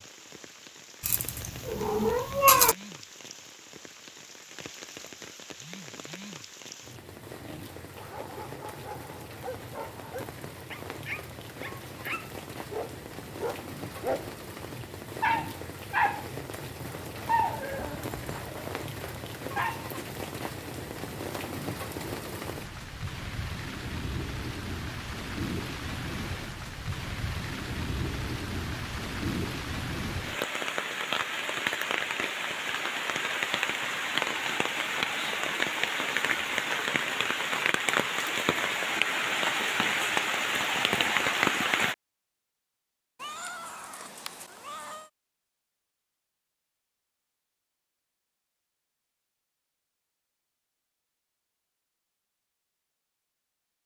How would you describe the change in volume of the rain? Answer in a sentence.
The loudness of the rain goes up.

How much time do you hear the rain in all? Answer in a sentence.
You can hear the rain for 42 seconds altogether.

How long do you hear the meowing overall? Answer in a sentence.
The meowing can be heard for 4 seconds in total.